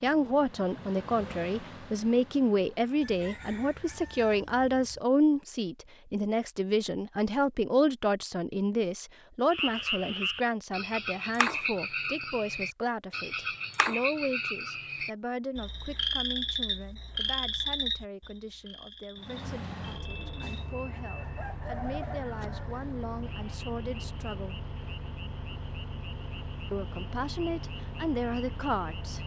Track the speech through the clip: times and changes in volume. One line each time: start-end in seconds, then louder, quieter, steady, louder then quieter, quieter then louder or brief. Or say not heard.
0.0-24.6 quieter
26.7-29.2 brief.